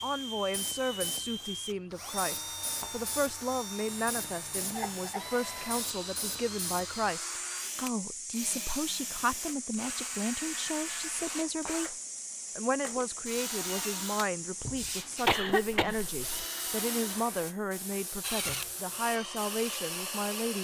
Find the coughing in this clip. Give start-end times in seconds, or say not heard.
4.7-5.2, 15.2-16.4.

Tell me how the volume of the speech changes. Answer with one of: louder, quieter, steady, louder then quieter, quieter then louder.
steady.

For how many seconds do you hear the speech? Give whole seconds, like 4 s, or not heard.
20 s.